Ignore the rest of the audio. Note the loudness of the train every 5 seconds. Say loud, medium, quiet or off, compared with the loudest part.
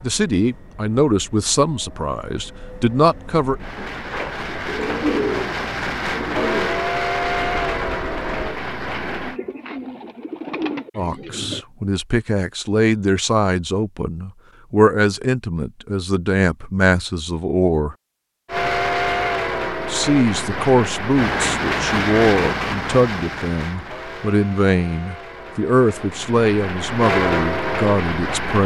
quiet, loud, off, loud, loud, loud.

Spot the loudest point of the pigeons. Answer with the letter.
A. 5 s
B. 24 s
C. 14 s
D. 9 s
A.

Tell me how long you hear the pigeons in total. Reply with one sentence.
The pigeons can be heard for 8 seconds in total.